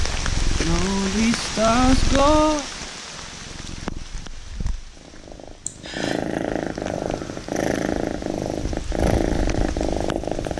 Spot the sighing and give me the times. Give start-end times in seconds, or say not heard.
0.6-2.6, 5.7-6.2.